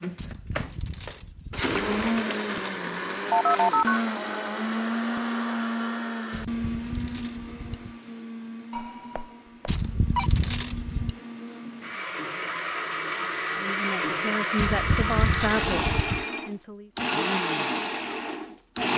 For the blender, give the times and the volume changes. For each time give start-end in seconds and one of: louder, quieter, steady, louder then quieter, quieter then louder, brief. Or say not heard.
0.0-18.9 quieter then louder.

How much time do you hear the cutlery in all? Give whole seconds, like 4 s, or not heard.
7 s.